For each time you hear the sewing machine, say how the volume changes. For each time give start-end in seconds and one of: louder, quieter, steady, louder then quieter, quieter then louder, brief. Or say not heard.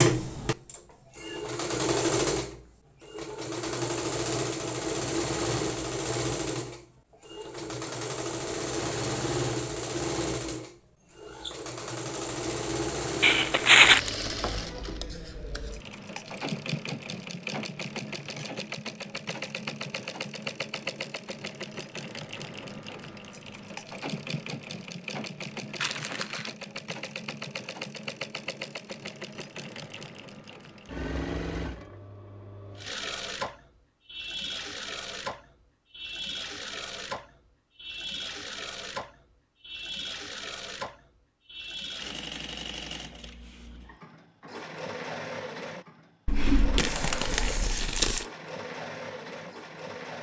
0.0-50.1 quieter.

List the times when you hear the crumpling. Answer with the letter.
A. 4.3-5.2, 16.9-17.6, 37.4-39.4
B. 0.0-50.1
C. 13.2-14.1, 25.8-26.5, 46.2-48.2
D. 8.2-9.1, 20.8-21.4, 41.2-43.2
C.